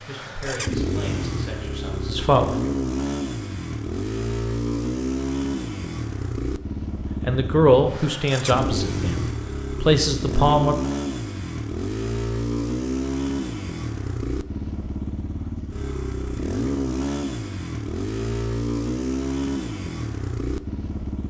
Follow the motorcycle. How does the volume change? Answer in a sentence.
The loudness of the motorcycle stays about the same.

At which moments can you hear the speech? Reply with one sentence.
You can hear the speech from 0.1 to 2.5 s and from 7.2 to 10.8 s.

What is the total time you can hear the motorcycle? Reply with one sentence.
The motorcycle can be heard for 21 seconds in total.